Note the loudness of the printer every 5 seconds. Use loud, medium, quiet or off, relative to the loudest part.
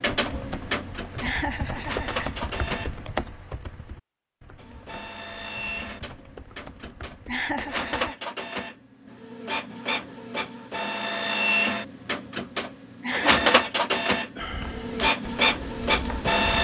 medium, medium, loud, loud.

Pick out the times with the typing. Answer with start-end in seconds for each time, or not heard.
0.1-8.2, 14.3-16.6.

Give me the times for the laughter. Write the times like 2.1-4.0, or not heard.
1.2-2.2, 7.2-8.2, 13.0-13.4.